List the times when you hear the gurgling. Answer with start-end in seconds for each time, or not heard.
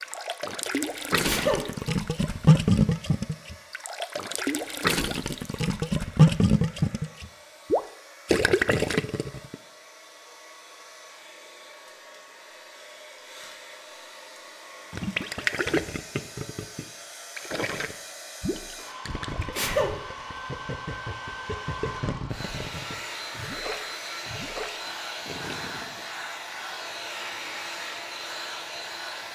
0.0-9.6, 14.9-26.1.